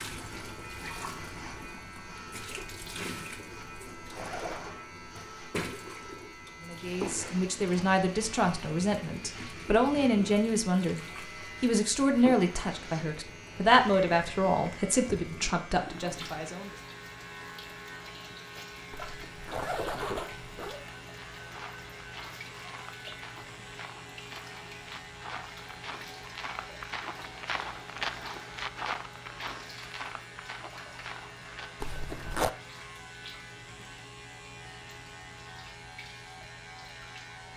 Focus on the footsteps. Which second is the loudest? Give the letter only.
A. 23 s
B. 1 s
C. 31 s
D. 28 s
D.